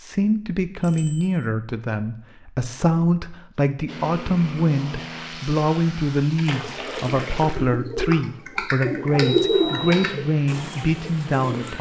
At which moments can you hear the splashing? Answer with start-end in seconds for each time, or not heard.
6.5-7.7.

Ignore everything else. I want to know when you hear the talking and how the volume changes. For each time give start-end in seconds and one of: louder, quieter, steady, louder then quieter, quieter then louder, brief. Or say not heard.
0.0-11.7 steady.